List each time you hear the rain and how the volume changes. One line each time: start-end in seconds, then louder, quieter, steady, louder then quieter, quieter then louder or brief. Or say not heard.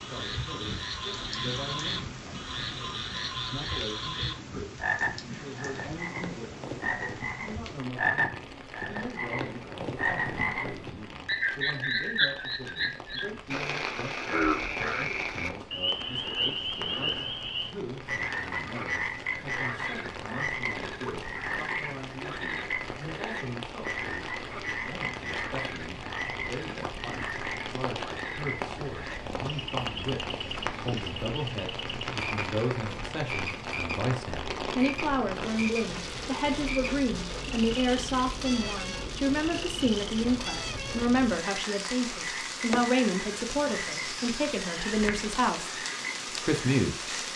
0.0-47.3 louder.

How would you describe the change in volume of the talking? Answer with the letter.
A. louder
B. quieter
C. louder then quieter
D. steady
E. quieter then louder
A.